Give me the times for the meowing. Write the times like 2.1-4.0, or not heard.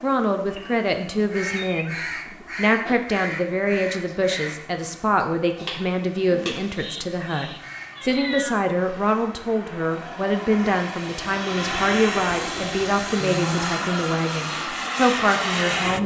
0.5-2.5, 6.7-8.6, 13.2-13.8.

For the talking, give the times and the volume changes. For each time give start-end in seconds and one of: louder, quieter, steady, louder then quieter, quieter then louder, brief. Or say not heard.
0.0-1.9 brief
2.5-16.0 steady.